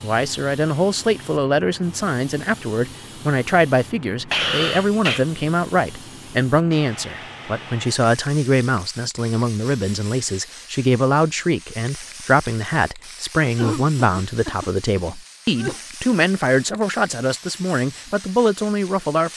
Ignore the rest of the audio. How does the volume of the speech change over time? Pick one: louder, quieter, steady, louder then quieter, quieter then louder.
steady.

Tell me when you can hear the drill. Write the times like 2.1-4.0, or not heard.
not heard.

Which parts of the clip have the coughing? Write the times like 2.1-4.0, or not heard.
4.3-5.2, 13.4-15.8.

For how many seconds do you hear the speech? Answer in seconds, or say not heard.
19 s.